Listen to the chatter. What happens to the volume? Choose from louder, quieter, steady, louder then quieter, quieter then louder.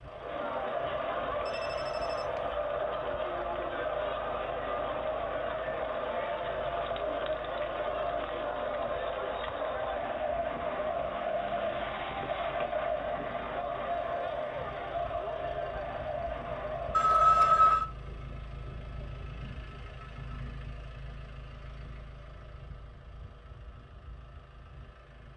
steady.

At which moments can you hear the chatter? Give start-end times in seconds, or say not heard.
0.0-17.8.